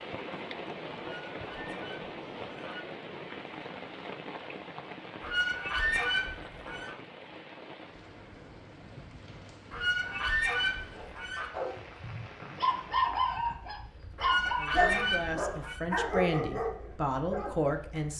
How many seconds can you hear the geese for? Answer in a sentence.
You can hear the geese for 7 seconds altogether.